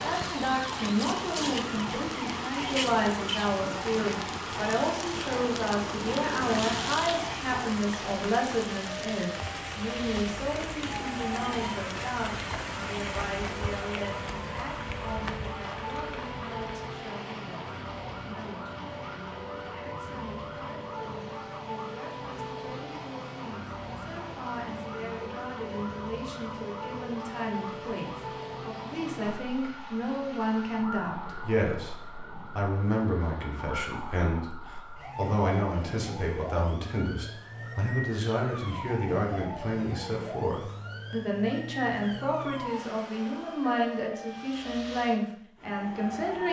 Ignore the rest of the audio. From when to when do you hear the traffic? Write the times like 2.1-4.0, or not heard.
not heard.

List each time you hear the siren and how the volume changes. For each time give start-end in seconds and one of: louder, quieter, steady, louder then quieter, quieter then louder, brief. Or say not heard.
0.0-46.4 steady.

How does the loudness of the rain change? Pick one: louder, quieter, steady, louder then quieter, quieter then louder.
quieter.